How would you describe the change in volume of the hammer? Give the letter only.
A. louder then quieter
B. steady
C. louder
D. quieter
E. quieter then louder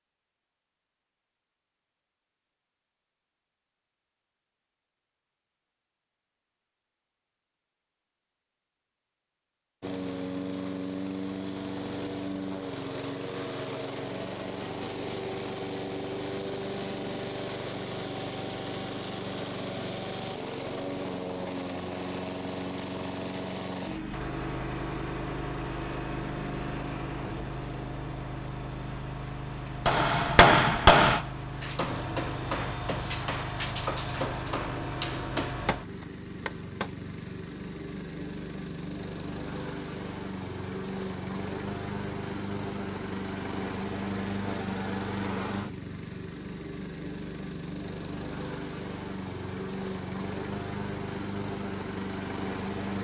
D.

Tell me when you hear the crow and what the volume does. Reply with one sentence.
You can't hear the crow here.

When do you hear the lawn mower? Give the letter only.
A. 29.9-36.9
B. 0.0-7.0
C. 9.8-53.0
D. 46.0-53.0
C.